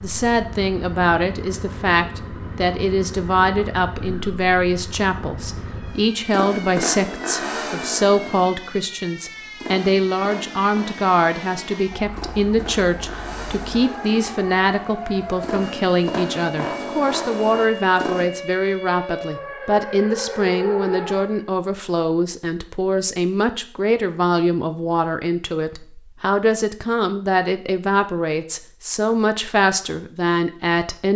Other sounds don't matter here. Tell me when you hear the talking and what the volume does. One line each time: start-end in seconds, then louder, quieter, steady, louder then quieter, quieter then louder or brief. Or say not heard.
0.0-31.1 steady.